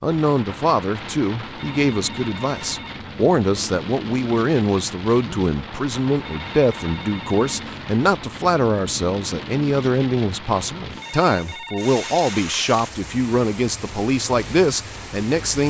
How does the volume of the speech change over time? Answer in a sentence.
The volume of the speech stays about the same.